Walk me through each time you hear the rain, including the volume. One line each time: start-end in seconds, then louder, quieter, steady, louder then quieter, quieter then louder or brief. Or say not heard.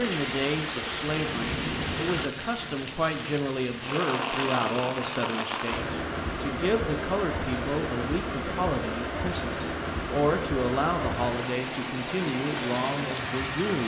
0.0-13.8 steady.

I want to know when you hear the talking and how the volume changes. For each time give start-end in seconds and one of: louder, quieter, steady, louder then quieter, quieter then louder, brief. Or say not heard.
0.0-13.8 steady.